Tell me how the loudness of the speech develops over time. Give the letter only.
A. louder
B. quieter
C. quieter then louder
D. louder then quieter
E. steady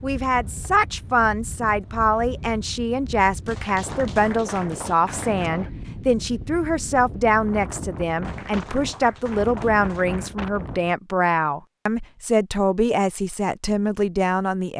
E.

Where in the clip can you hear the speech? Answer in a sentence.
The speech can be heard from 0.0 to 14.7 s.